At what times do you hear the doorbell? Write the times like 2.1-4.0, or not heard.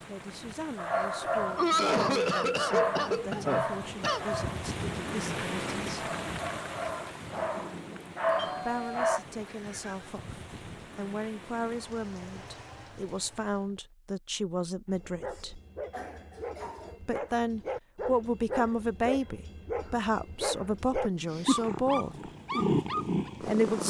8.2-10.1.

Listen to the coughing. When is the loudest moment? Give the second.
2 s.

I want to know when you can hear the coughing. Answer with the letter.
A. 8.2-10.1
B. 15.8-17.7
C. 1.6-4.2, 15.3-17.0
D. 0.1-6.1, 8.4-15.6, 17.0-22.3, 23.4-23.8
C.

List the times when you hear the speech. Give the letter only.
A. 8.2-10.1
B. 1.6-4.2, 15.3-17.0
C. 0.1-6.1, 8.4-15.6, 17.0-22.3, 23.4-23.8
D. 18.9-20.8
C.